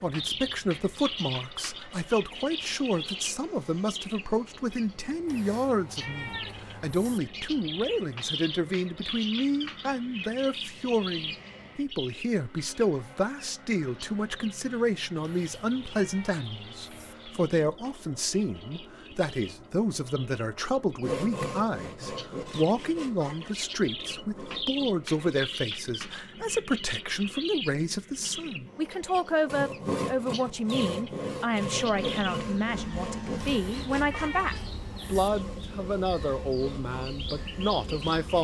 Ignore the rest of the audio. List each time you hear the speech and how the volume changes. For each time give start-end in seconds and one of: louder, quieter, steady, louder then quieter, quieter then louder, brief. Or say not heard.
0.0-38.3 steady.